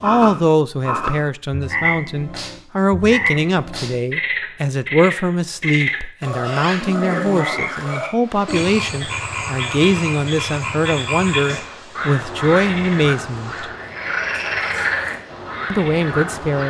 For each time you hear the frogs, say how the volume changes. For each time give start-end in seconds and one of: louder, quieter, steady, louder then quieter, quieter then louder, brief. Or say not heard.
0.0-16.6 steady.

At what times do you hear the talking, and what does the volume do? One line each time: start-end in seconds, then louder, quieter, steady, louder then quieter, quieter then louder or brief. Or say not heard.
0.0-13.7 steady
15.7-16.6 brief.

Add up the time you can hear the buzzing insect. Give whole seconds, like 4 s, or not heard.
not heard.